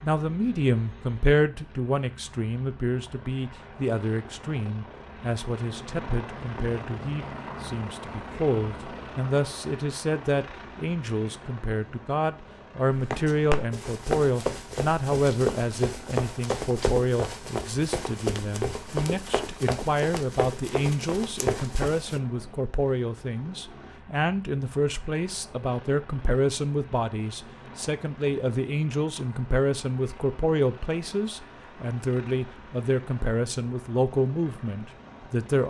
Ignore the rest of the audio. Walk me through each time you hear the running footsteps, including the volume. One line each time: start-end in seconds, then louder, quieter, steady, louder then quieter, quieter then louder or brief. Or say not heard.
12.9-22.2 steady.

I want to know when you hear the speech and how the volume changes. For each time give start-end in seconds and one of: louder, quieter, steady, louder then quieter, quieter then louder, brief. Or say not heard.
0.0-35.6 steady.